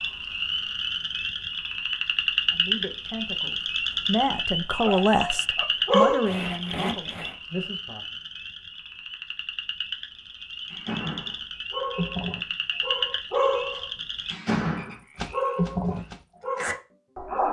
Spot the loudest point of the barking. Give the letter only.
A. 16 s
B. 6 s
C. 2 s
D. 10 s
B.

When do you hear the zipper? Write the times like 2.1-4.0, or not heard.
6.2-7.3.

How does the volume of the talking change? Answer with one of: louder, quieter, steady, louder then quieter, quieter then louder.
louder then quieter.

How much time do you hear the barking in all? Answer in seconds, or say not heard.
8 s.